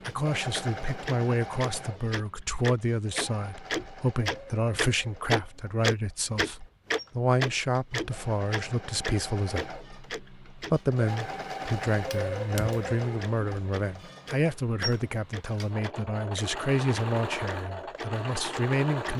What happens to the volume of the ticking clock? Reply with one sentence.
The loudness of the ticking clock goes up, then down.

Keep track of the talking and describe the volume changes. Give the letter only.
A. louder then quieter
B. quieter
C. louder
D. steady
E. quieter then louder
D.